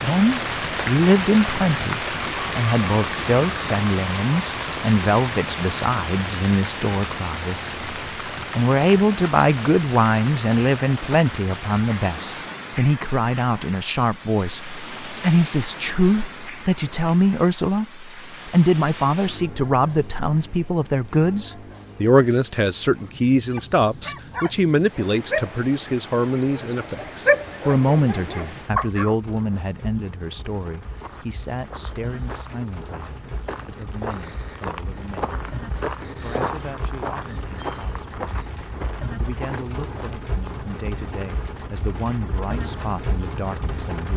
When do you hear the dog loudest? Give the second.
27 s.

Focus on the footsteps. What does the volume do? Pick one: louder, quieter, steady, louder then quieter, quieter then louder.
louder then quieter.